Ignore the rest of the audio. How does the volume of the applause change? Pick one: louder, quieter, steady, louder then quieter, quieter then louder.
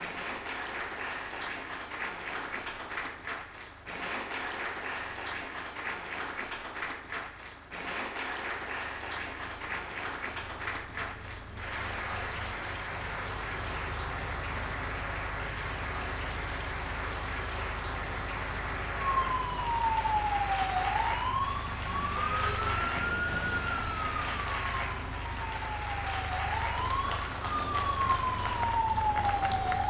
steady.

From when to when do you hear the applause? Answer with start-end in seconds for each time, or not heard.
0.0-29.8.